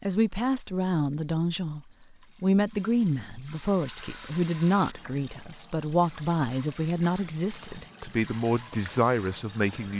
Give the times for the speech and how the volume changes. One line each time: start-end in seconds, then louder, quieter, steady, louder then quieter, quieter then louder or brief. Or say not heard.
0.0-9.9 steady.